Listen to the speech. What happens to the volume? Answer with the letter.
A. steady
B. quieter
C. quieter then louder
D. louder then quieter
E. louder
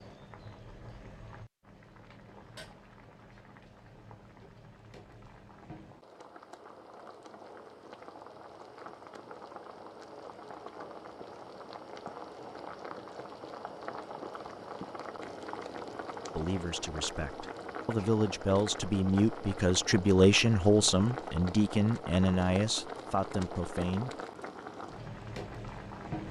D.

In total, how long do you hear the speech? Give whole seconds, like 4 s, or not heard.
8 s.